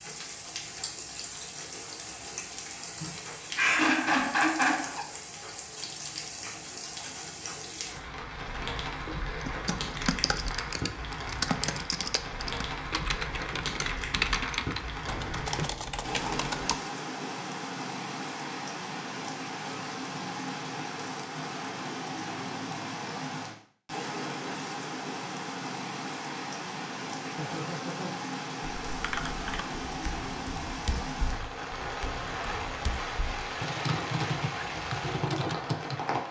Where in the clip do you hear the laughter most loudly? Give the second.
4 s.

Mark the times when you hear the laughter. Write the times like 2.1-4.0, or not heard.
3.0-5.0, 27.2-28.1.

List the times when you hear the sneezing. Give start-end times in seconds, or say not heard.
not heard.